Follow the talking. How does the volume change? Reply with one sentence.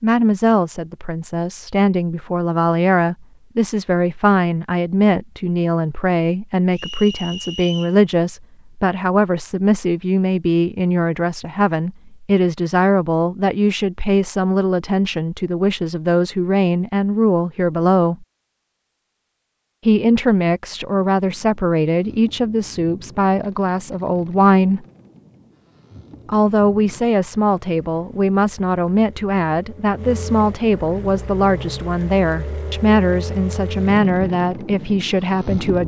The volume of the talking stays about the same.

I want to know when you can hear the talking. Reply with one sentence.
You can hear the talking from 0.0 to 18.2 s, from 19.9 to 24.9 s and from 26.2 to 35.8 s.